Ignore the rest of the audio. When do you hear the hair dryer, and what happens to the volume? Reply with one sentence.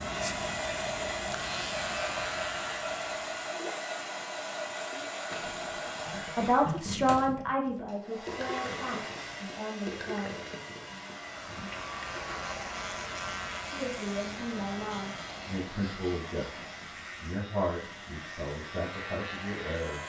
The hair dryer can be heard from 0.0 to 19.8 s, getting quieter.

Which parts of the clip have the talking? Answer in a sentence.
You can hear the talking from 6.2 to 10.3 s and from 13.7 to 20.0 s.